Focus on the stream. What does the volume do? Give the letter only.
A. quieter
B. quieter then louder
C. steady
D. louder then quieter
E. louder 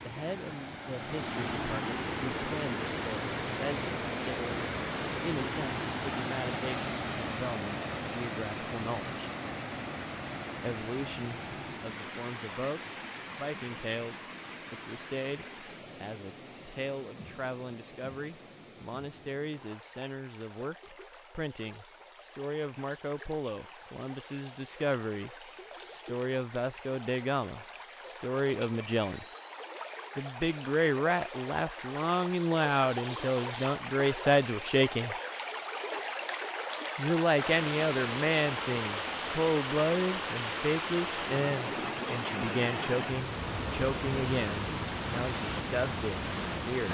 B.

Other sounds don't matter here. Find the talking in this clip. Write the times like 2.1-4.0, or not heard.
0.0-9.2, 10.6-29.2, 30.1-35.1, 37.0-46.8.